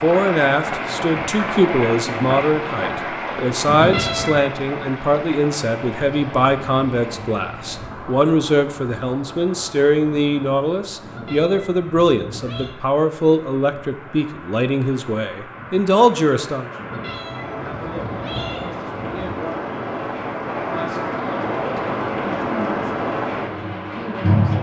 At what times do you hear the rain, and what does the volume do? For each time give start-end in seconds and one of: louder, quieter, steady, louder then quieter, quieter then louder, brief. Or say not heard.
0.0-24.5 quieter then louder.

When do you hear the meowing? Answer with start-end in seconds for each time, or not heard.
3.6-4.5, 11.0-12.8, 16.8-19.6.